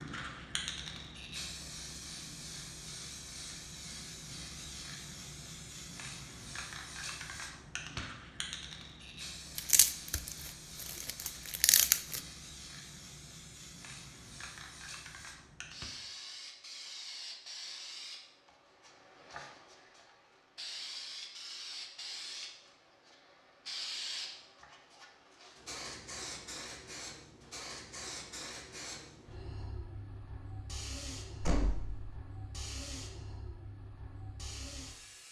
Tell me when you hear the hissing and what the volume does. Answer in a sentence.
You can hear the hissing from 0.0 to 35.2 s, at a steady volume.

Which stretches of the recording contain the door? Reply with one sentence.
The door can be heard from 31.4 to 32.1 s.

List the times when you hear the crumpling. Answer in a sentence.
You can hear the crumpling from 9.6 to 12.2 s.